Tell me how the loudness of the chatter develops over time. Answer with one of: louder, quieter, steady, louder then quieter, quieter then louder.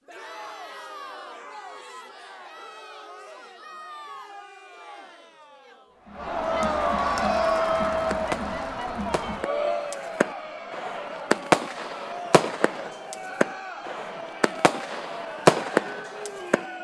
louder then quieter.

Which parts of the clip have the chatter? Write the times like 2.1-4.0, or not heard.
0.0-16.7.